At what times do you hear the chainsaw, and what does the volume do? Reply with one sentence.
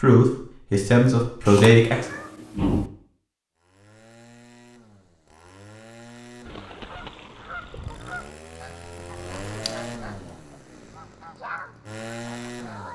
You can hear the chainsaw from 3.5 to 12.9 s, getting louder.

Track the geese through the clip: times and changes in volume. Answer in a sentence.
You can hear the geese from 6.5 to 12.9 s, getting quieter then louder.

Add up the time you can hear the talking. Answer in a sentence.
The talking can be heard for 2 seconds in total.